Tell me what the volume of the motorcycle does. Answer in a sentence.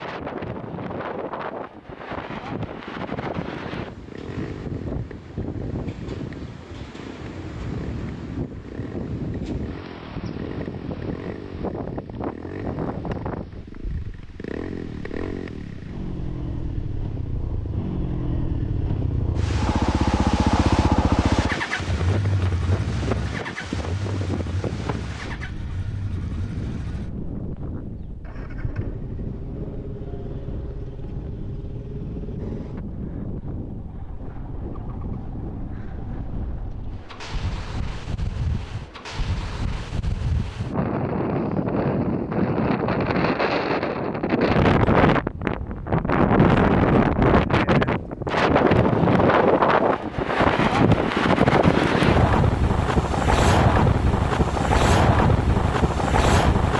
The loudness of the motorcycle goes up, then down.